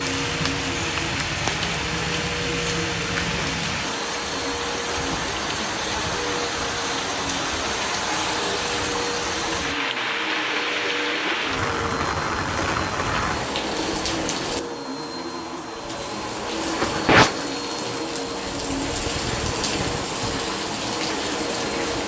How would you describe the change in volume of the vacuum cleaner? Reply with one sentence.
The volume of the vacuum cleaner stays about the same.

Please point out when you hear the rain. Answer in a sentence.
The rain can be heard from 0.0 to 22.0 s.